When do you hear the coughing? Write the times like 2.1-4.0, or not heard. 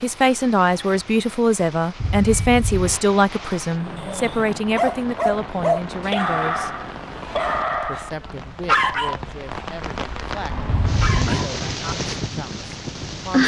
2.0-3.0, 10.7-11.3.